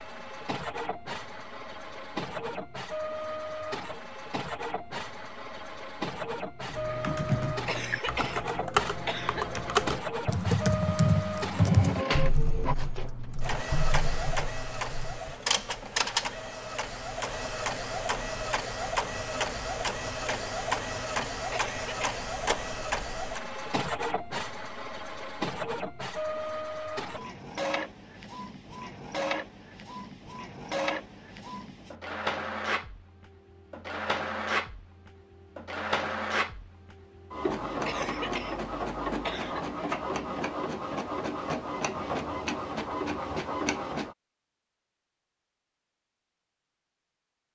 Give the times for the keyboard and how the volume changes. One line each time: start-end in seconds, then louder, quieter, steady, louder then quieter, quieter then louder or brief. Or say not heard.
6.7-15.3 louder then quieter.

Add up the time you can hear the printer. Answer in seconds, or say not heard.
44 s.